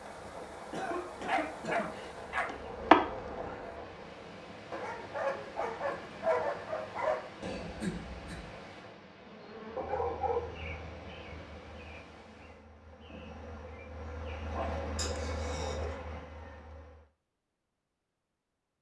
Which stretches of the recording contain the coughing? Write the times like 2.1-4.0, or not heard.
0.7-1.9, 7.4-8.6, 14.9-15.8.